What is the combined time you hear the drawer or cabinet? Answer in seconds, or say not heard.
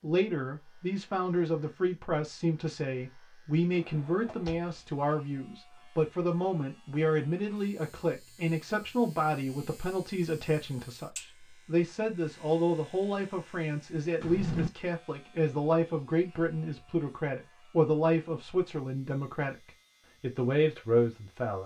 2 s.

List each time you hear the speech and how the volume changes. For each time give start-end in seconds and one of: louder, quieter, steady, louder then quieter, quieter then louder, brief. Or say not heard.
0.0-21.6 steady.